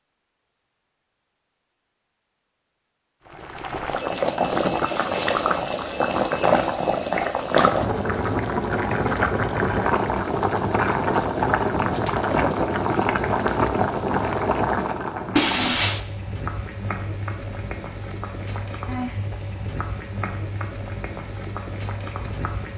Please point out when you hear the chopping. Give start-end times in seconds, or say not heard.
not heard.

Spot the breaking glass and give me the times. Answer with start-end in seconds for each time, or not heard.
4.1-5.0, 11.9-12.6, 15.3-16.1.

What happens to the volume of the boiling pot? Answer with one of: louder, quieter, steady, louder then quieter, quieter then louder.
quieter.